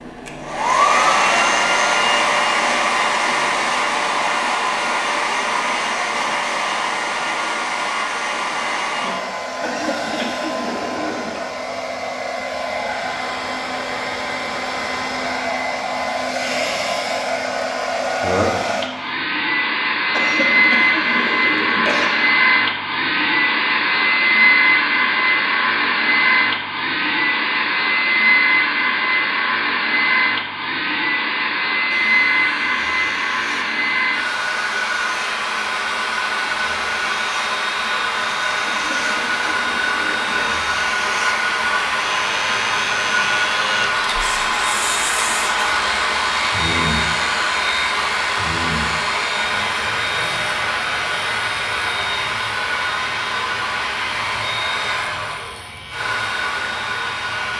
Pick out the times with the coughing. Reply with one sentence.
You can hear the coughing from 9.6 to 11.4 s, from 20.1 to 22.1 s and from 38.6 to 40.6 s.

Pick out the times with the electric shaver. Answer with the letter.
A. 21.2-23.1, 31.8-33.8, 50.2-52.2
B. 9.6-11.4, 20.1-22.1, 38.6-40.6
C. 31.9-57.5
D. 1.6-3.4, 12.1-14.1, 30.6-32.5
C.